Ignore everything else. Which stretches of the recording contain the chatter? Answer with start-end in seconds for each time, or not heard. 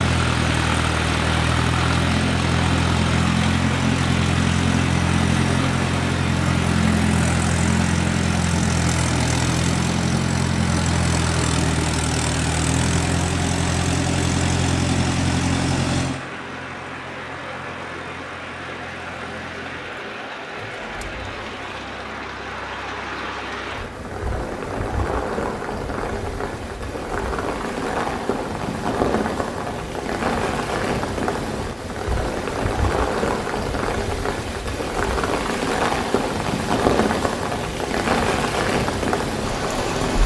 not heard.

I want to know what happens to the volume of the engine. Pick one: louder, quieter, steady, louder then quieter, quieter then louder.
quieter.